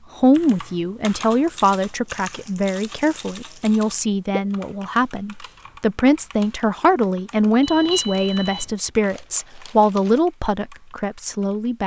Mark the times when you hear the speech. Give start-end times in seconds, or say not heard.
0.1-11.8.